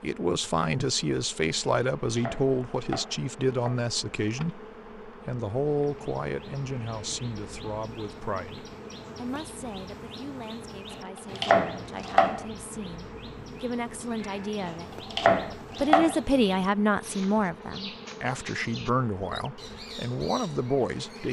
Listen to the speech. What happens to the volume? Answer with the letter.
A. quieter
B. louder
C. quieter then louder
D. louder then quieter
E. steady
C.